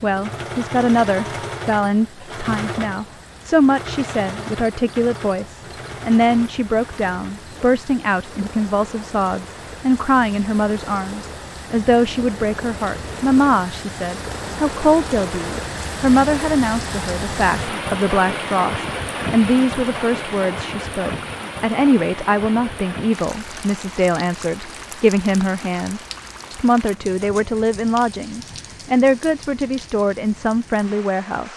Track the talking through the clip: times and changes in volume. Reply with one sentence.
The talking can be heard from 0.0 to 31.5 s, at a steady volume.